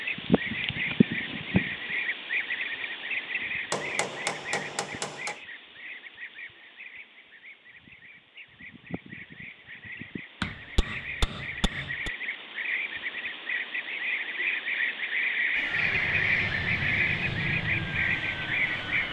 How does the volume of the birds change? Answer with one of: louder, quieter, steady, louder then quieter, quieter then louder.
quieter then louder.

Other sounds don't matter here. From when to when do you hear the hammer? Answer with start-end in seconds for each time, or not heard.
3.7-5.3, 10.4-12.1.